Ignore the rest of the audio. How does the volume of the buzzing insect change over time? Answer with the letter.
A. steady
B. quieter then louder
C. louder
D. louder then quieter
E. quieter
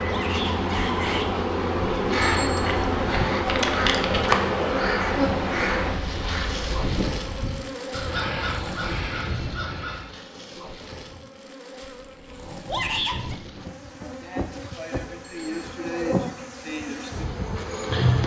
B.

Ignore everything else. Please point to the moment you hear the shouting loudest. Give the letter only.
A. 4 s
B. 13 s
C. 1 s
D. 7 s
B.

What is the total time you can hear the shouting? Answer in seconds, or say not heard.
2 s.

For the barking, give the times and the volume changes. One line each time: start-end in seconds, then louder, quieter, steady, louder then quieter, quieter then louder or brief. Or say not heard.
not heard.